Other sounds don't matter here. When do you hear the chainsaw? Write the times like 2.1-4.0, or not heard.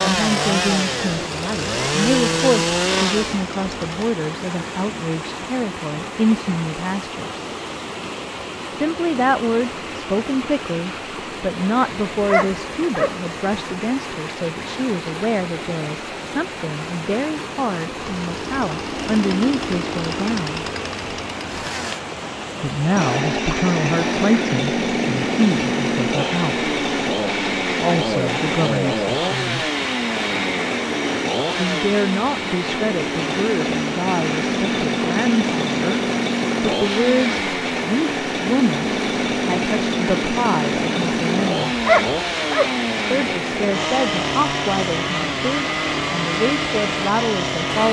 0.0-4.1, 17.9-22.0, 22.9-47.8.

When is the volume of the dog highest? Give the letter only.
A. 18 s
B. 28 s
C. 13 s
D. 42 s
D.